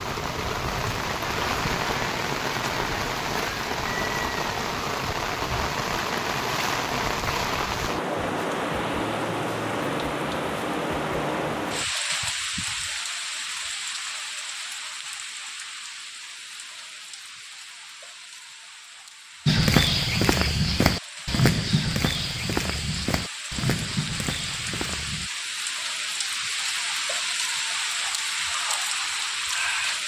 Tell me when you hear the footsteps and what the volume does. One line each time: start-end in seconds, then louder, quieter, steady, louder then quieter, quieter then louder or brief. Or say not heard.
19.4-25.3 quieter.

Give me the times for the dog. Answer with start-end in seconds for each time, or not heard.
not heard.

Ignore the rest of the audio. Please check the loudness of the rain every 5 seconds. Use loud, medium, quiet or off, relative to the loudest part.
loud, loud, loud, quiet, medium, loud.